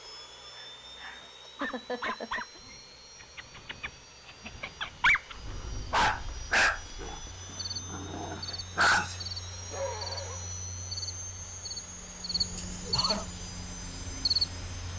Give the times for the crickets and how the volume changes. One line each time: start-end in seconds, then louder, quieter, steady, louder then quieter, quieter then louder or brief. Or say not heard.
5.2-14.9 louder.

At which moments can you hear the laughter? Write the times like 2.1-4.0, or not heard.
1.4-2.6, 12.6-13.3.